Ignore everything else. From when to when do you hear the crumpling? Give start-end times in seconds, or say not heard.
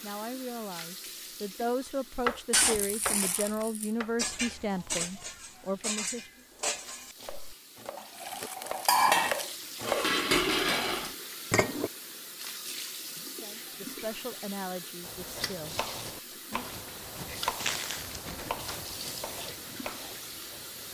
2.5-3.9, 8.2-9.6, 17.6-18.2.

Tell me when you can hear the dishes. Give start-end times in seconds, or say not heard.
4.2-11.9.